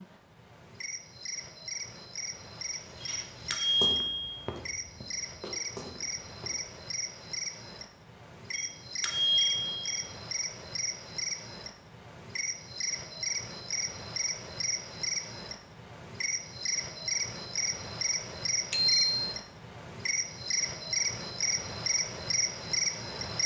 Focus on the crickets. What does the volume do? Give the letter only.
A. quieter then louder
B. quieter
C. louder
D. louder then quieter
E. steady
C.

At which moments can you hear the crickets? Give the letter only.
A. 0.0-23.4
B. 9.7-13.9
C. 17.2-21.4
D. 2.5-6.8
A.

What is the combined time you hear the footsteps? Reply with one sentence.
The footsteps can be heard for 4 seconds in total.